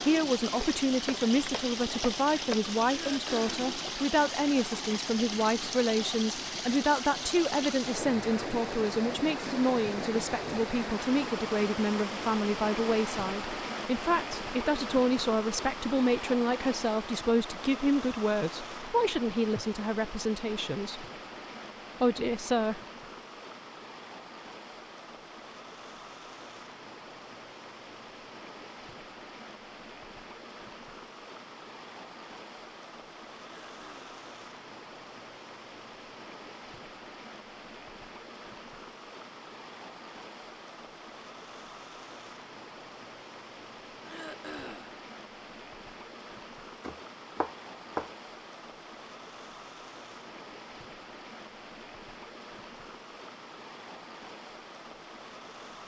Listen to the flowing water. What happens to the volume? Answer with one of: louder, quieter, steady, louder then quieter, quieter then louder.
quieter.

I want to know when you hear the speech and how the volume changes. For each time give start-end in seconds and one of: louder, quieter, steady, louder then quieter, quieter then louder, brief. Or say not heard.
0.0-21.1 steady
22.0-22.8 brief.